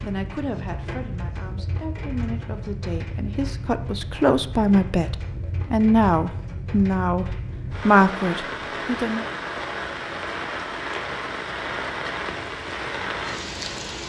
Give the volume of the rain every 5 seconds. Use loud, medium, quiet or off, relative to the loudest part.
medium, loud, loud.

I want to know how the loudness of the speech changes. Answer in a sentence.
The volume of the speech goes up.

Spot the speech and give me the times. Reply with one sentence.
You can hear the speech from 0.0 to 9.2 s.